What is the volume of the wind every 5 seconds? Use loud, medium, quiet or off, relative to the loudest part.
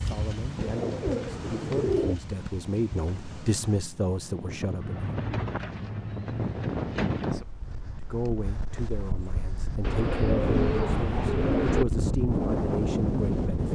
medium, medium, loud.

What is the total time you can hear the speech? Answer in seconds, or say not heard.
11 s.